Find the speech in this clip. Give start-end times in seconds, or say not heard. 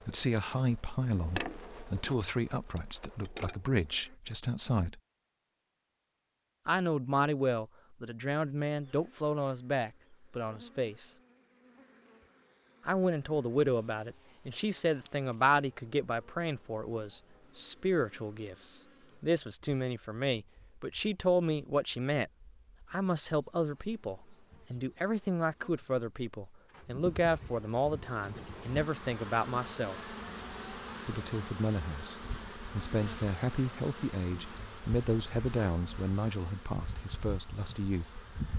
0.1-5.0, 6.7-11.2, 12.8-22.3, 22.9-29.9, 31.1-38.0.